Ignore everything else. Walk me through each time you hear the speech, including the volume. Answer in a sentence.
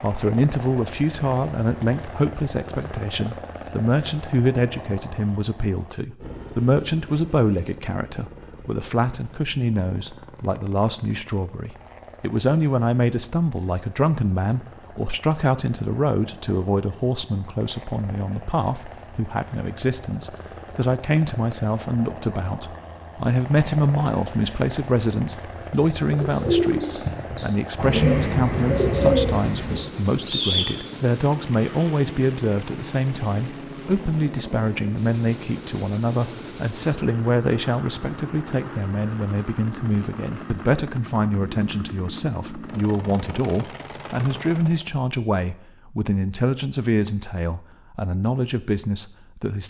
The speech can be heard from 0.0 to 49.6 s, at a steady volume.